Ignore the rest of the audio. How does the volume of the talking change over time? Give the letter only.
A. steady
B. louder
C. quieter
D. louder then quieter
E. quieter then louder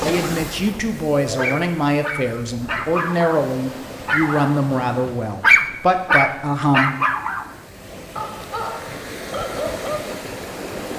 A.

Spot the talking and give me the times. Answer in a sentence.
You can hear the talking from 0.0 to 7.0 s.